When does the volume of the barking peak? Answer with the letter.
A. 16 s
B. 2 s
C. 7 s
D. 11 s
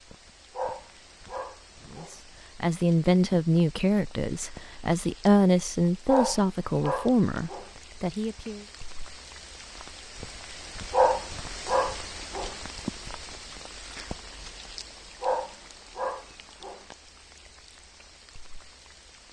D.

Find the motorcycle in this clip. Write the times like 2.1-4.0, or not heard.
not heard.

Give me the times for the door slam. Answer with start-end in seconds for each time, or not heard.
not heard.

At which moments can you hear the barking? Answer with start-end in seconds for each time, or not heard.
0.6-2.1, 6.0-7.7, 10.9-12.6, 15.2-16.9.